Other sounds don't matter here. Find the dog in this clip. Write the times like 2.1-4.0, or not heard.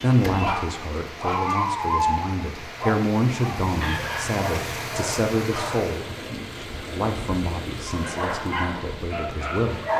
0.0-5.8, 7.8-9.9.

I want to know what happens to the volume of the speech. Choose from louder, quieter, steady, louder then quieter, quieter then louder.
louder then quieter.